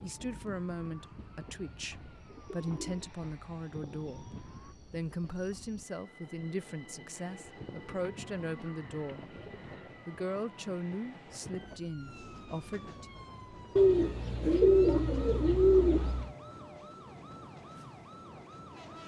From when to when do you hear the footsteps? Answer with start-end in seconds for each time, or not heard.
not heard.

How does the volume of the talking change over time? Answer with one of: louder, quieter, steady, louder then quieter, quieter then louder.
steady.